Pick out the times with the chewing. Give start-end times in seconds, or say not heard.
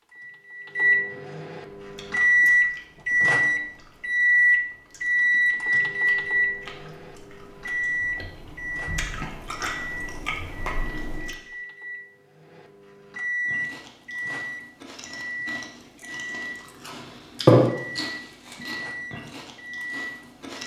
1.8-11.3, 13.4-20.6.